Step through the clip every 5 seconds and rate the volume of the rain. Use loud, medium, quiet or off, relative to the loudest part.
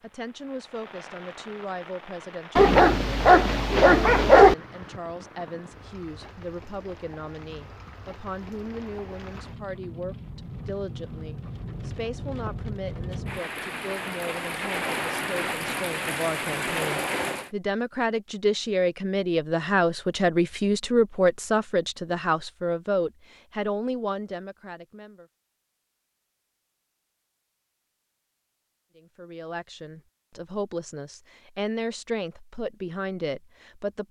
quiet, quiet, medium, loud, off, off, off.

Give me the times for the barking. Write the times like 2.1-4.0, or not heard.
2.5-4.5.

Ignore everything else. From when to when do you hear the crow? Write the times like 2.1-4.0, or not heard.
not heard.